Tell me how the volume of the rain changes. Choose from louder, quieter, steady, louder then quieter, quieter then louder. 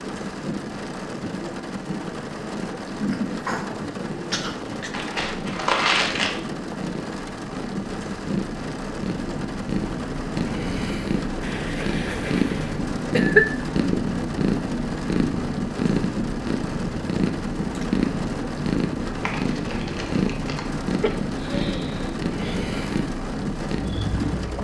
steady.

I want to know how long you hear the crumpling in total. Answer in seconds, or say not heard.
3 s.